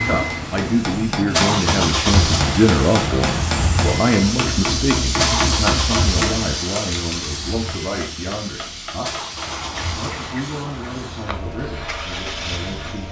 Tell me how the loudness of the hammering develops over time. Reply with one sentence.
The loudness of the hammering goes down.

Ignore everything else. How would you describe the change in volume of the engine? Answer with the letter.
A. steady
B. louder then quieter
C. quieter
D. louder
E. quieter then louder
C.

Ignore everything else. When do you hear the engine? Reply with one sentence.
You can hear the engine from 0.0 to 13.0 s.